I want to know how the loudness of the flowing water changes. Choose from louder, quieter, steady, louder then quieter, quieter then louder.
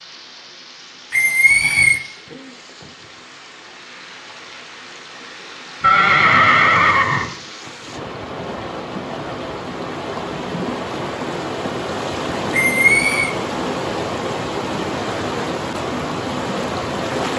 louder.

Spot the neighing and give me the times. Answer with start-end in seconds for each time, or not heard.
1.1-2.0, 5.8-7.3, 12.5-13.3.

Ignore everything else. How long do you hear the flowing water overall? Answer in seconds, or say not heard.
17 s.